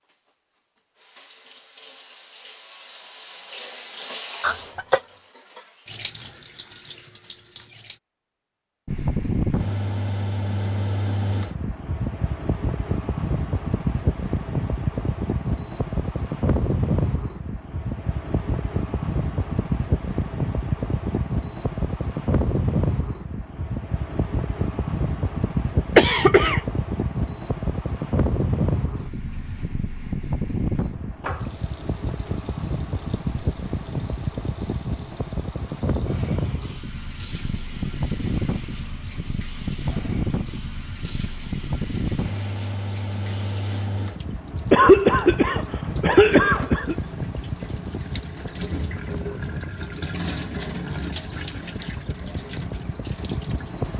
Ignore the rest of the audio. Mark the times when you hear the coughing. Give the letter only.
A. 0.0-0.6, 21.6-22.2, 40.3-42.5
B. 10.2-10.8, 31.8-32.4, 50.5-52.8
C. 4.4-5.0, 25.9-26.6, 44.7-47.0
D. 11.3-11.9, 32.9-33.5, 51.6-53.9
C.